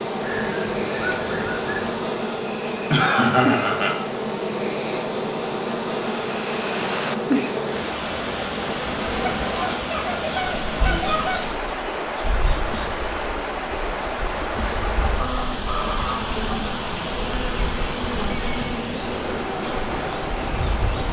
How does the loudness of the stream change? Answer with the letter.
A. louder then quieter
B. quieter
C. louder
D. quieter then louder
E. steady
E.